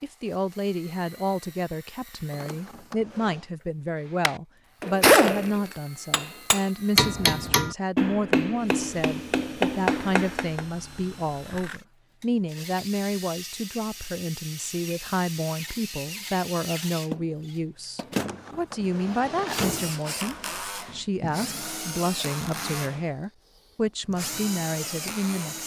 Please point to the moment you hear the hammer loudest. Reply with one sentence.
The volume of the hammer peaks at 5 seconds.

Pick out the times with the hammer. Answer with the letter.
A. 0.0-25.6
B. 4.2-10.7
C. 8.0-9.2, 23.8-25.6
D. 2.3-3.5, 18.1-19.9
B.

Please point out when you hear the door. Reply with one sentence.
The door can be heard from 2.3 to 3.5 s and from 18.1 to 19.9 s.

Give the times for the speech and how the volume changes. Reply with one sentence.
The speech can be heard from 0.0 to 25.6 s, at a steady volume.